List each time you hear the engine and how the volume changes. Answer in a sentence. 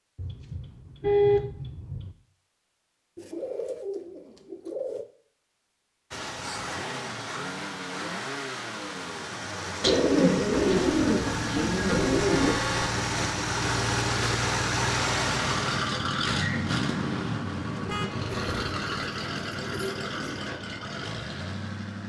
The engine can be heard from 6.1 to 22.0 s, getting louder then quieter.